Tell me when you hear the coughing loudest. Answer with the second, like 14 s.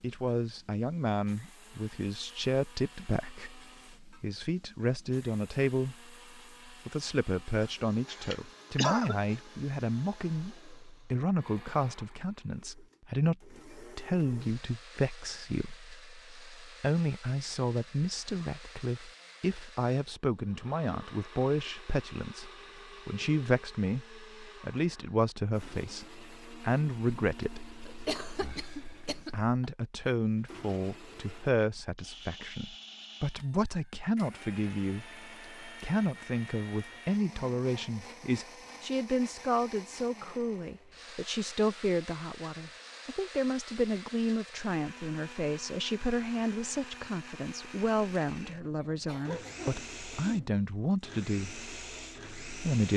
9 s.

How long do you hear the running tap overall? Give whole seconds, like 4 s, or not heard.
not heard.